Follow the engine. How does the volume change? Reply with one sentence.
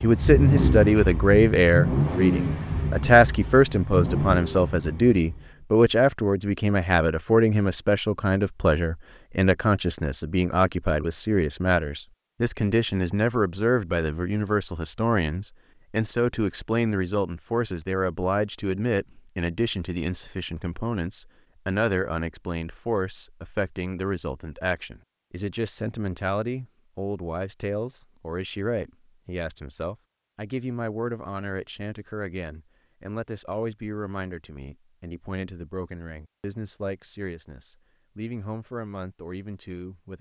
The volume of the engine goes down.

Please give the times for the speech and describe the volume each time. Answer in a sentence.
The speech can be heard from 0.0 to 40.1 s, getting quieter.